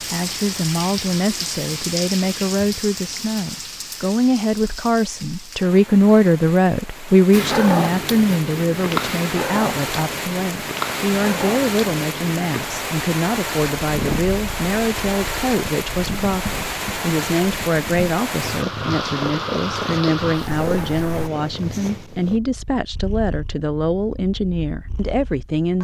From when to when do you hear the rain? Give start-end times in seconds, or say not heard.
0.0-21.3.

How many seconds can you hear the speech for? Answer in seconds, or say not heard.
26 s.